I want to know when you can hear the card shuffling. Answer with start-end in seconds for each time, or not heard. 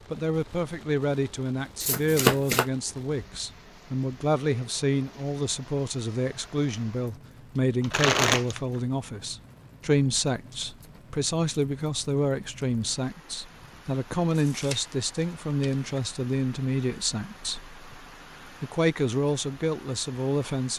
1.8-2.6, 7.8-8.6, 14.3-16.0.